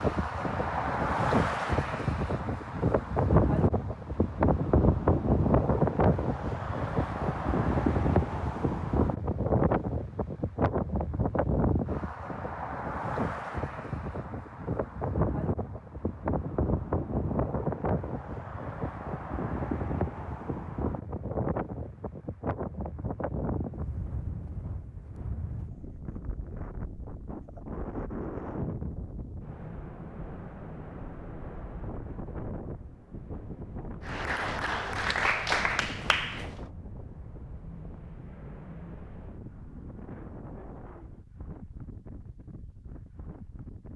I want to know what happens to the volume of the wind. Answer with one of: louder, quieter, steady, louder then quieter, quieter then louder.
quieter.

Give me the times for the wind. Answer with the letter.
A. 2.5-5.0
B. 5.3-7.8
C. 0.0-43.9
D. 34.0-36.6
C.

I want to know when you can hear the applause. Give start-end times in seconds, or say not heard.
34.0-36.6.